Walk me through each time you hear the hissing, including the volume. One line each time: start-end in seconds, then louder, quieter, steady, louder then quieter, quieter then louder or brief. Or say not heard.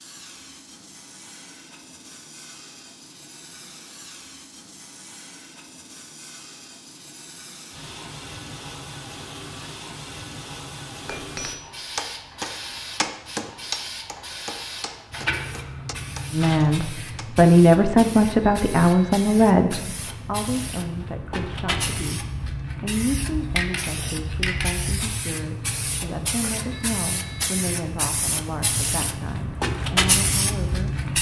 0.0-31.1 louder.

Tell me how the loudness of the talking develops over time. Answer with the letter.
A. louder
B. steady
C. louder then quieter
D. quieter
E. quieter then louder
D.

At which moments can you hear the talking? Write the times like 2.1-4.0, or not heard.
16.3-30.9.